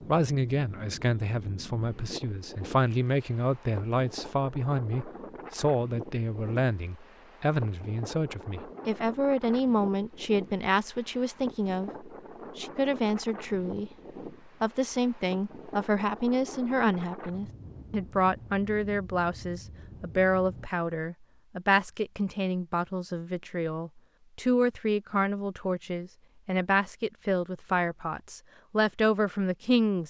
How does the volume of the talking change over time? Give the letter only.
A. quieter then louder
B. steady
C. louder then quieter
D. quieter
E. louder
B.